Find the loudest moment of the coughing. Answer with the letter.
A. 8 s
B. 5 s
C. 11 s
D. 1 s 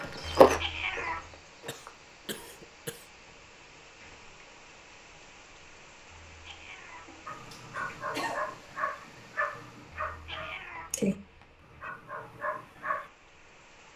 A.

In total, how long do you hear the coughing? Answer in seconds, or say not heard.
3 s.